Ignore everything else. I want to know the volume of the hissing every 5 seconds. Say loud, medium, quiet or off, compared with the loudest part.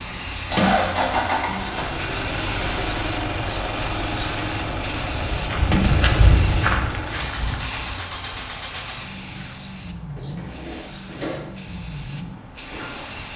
loud, loud, medium.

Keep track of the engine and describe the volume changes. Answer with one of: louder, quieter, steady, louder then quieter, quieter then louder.
quieter.